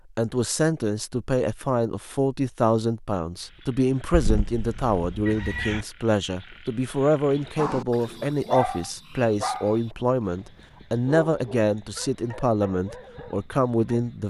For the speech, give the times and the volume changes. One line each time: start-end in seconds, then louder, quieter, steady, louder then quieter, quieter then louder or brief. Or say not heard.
0.1-14.2 steady.